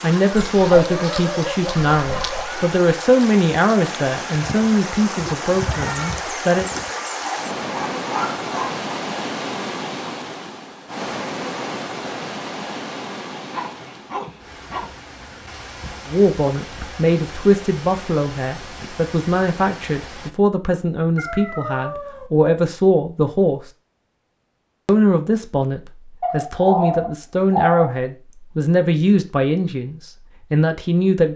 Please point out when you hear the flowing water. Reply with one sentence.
You can hear the flowing water from 0.0 to 20.3 s.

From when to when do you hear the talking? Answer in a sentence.
You can hear the talking from 0.0 to 6.7 s, from 16.1 to 23.6 s and from 24.9 to 31.3 s.